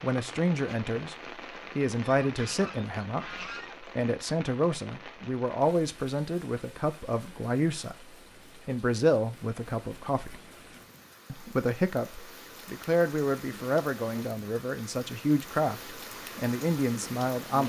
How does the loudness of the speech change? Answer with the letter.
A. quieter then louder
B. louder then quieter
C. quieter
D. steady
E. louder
D.